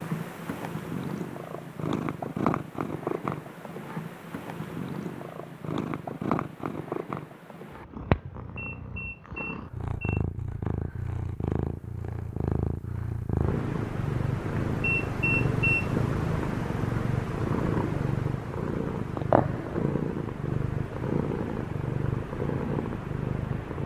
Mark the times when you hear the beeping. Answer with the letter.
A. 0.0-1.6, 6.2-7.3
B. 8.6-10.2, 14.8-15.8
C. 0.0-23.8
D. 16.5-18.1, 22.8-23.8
B.